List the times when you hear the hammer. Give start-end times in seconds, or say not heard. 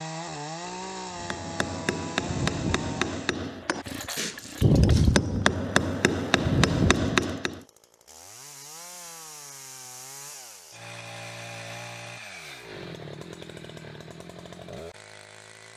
1.1-7.6.